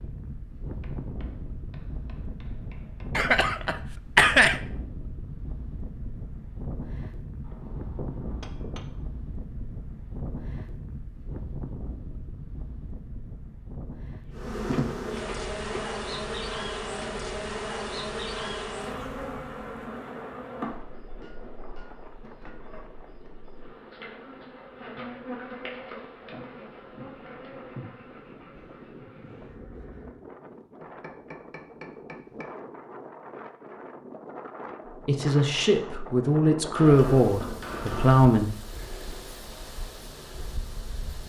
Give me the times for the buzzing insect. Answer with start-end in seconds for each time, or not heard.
14.3-30.2.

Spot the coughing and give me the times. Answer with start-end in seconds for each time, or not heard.
3.1-4.6.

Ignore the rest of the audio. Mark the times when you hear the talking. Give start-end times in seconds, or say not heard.
34.9-38.5.